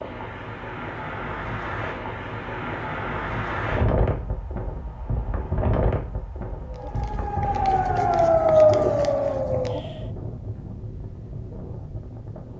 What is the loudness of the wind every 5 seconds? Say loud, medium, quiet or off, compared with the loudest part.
loud, loud, medium.